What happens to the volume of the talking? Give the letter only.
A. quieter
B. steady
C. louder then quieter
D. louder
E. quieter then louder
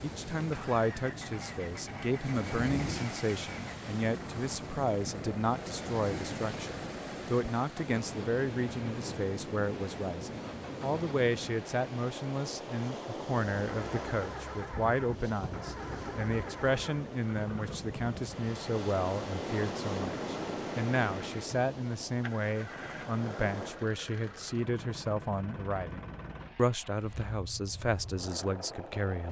B.